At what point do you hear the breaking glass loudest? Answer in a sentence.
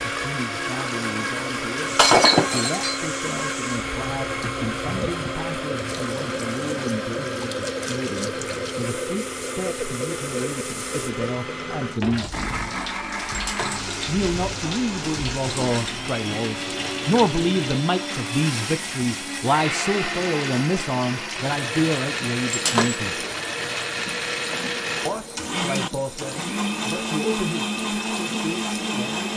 The loudest moment of the breaking glass is at 2 seconds.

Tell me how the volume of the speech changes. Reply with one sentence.
The loudness of the speech goes up, then down.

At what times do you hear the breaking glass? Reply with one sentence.
The breaking glass can be heard from 1.9 to 3.0 s, from 13.3 to 13.8 s and from 22.5 to 22.9 s.